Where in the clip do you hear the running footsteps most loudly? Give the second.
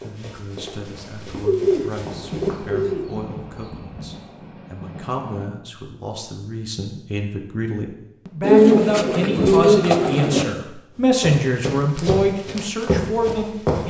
13 s.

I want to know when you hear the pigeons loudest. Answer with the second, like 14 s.
9 s.